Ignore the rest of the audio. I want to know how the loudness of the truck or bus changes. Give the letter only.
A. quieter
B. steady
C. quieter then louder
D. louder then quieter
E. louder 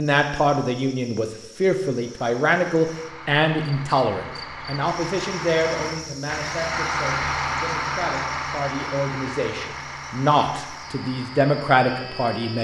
D.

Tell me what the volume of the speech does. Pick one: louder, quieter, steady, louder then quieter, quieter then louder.
quieter then louder.